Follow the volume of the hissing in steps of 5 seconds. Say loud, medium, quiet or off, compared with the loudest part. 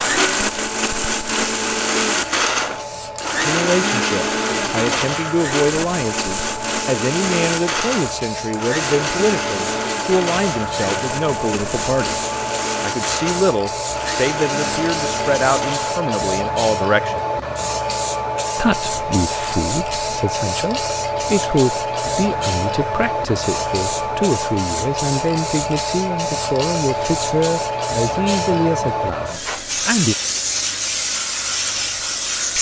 medium, medium, loud, loud, loud, loud, loud.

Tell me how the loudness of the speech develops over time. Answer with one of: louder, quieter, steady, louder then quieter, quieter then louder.
steady.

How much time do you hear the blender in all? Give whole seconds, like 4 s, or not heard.
16 s.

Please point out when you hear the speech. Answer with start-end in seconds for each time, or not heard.
3.4-12.2, 12.8-17.2, 18.6-30.1.